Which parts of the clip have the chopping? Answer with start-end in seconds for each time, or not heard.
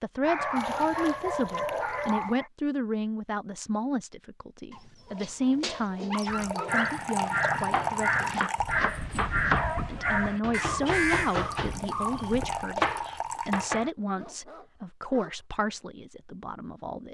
7.7-9.7, 10.4-13.9.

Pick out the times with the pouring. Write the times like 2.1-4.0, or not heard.
0.6-2.4, 6.2-8.8, 11.5-13.8.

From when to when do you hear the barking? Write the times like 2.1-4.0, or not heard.
0.2-2.5, 4.7-7.0, 8.6-10.4, 14.2-15.4.